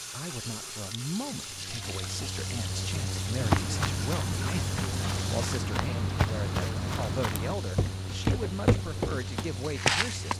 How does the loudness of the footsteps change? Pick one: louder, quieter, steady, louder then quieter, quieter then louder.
louder.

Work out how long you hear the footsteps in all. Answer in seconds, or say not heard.
7 s.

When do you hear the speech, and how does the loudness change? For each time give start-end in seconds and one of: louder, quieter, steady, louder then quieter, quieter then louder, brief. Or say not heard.
0.1-10.3 steady.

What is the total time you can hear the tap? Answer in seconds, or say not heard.
10 s.